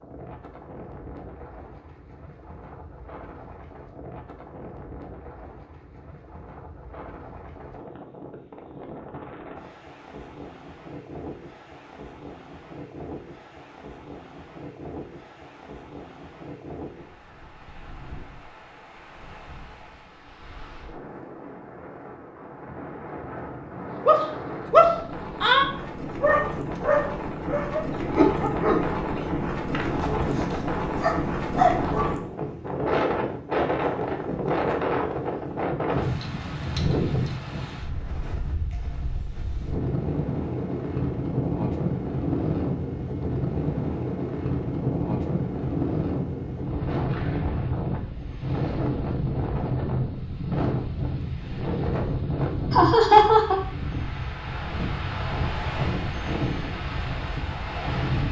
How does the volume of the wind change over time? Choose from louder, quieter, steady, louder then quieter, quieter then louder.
louder.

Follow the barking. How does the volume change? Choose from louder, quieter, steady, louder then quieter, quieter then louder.
quieter then louder.